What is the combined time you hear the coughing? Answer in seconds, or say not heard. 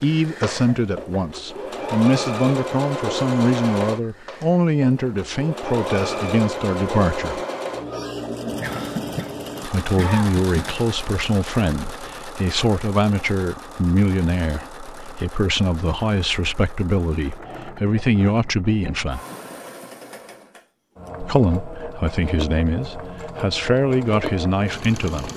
2 s.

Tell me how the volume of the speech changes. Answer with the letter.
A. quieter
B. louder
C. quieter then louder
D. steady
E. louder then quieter
D.